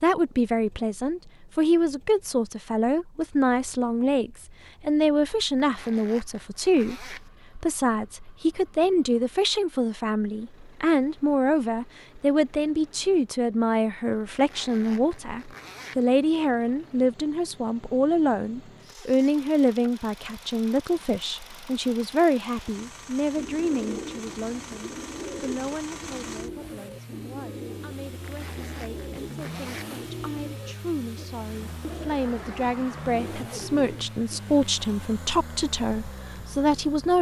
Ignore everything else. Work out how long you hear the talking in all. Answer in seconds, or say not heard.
37 s.